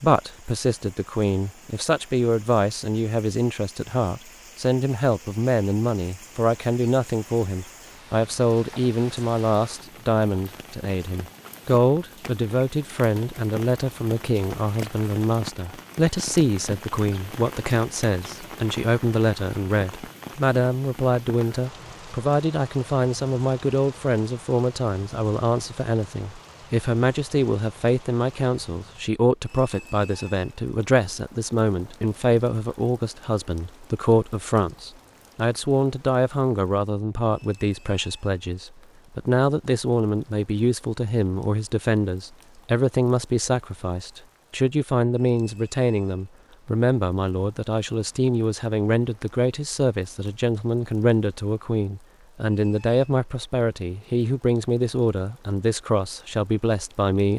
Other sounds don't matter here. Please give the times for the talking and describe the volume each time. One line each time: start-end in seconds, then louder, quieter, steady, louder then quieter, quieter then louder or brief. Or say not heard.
0.0-57.3 steady.